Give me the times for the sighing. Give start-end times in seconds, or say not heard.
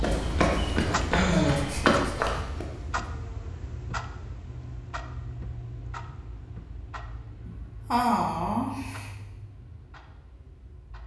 1.1-1.6, 7.5-9.1.